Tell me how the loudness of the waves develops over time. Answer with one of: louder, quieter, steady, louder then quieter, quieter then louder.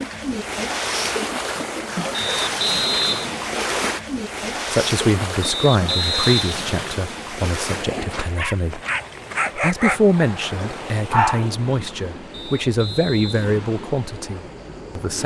quieter.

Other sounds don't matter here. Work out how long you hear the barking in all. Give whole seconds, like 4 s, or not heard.
3 s.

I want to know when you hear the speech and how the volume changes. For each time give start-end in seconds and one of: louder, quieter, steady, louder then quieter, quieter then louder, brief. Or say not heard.
4.7-8.8 quieter
9.6-15.2 quieter.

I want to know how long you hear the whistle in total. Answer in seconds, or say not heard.
4 s.